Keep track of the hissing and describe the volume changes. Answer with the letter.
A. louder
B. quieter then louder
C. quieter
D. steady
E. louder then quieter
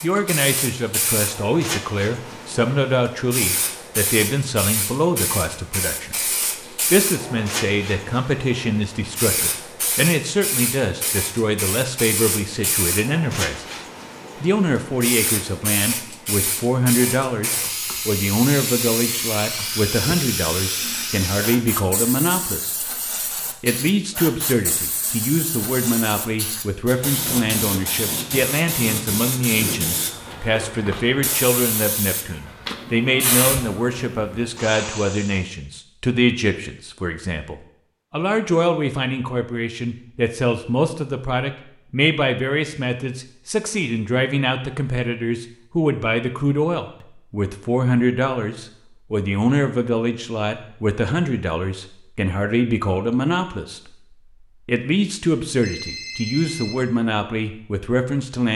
D.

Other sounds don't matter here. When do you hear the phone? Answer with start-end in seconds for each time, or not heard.
55.6-56.8.